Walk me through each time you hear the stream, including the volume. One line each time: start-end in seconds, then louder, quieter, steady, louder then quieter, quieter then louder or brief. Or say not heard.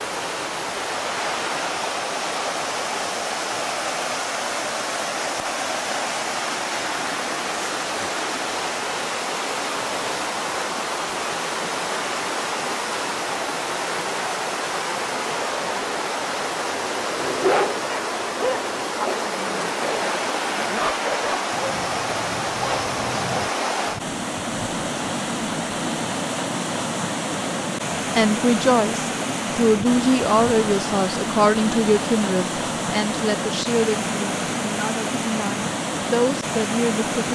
0.0-37.3 steady.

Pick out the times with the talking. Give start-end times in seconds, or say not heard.
28.1-37.3.